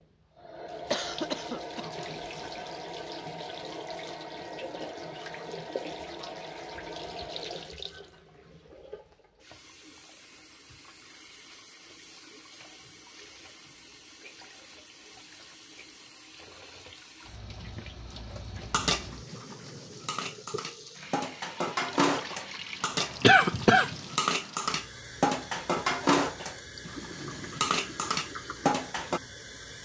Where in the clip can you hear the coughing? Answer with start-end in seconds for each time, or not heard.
0.9-2.7, 23.2-23.9.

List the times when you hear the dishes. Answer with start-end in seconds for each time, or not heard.
18.7-29.2.